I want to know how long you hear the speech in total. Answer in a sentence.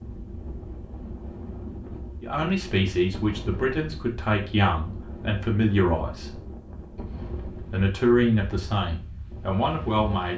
The speech can be heard for 7 seconds in total.